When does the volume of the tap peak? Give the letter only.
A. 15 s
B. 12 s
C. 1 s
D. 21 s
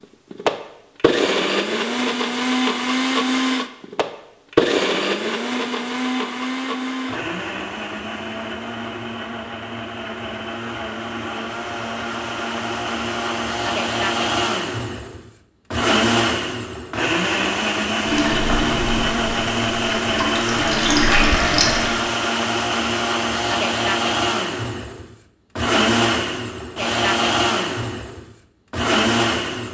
D.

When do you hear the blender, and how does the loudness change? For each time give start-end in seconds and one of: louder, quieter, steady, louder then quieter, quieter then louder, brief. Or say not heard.
0.3-29.6 quieter then louder.